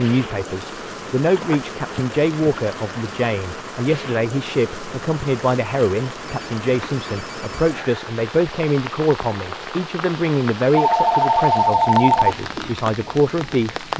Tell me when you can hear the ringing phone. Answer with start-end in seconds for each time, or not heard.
1.4-2.5, 6.2-7.7, 10.7-12.3.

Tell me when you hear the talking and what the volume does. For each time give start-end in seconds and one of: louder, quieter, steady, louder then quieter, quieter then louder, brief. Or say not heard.
0.0-13.9 steady.